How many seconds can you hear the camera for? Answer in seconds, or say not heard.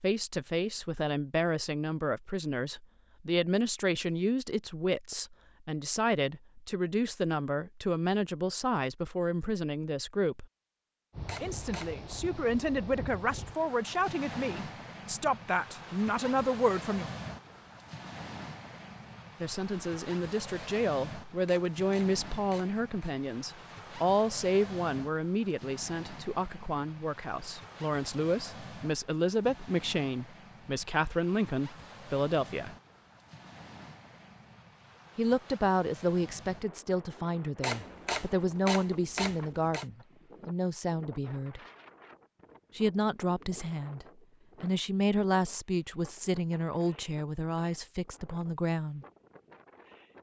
5 s.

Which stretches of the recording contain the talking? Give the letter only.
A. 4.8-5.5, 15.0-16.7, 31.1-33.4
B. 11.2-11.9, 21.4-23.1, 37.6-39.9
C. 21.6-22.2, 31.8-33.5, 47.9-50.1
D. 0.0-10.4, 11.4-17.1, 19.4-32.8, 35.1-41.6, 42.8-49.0
D.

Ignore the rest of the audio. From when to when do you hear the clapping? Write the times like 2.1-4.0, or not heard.
not heard.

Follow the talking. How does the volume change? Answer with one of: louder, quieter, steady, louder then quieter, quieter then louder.
steady.